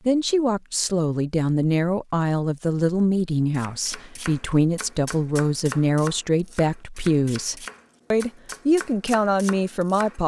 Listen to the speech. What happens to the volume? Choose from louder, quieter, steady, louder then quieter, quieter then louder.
steady.